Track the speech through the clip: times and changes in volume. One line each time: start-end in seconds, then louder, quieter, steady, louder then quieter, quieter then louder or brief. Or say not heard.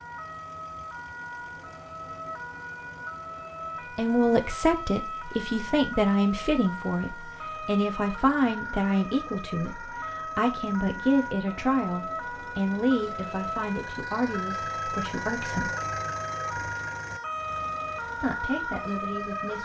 4.0-15.7 quieter
18.1-19.6 brief.